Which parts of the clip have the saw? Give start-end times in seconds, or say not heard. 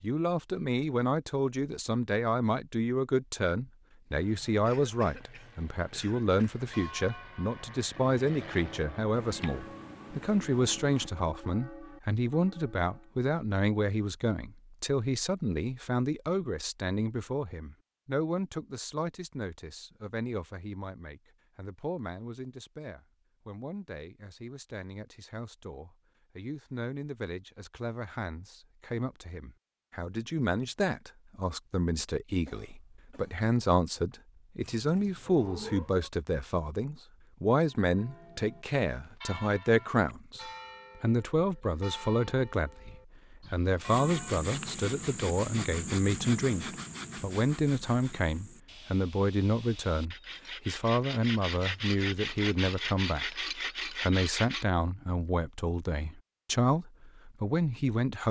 43.9-54.6.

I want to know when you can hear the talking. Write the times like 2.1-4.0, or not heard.
0.0-58.2.